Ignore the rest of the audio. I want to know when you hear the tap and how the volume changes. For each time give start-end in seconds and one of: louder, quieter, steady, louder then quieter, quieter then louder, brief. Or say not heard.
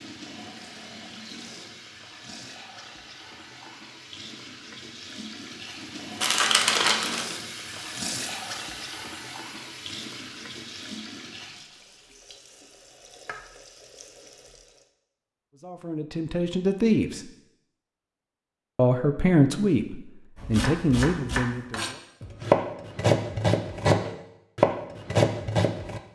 0.0-14.9 louder then quieter.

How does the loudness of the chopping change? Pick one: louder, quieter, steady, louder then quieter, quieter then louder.
louder.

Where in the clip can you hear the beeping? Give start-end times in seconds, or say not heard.
not heard.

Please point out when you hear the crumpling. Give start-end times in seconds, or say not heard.
6.2-7.3.